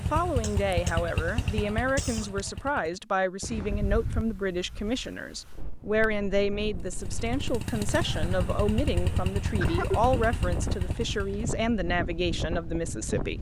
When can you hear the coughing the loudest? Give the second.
10 s.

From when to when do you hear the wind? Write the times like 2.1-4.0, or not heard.
3.4-13.3.